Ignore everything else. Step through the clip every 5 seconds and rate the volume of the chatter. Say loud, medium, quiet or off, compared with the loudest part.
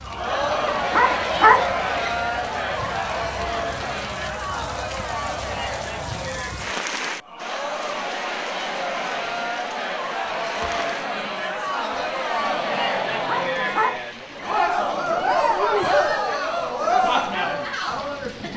loud, medium, loud, loud.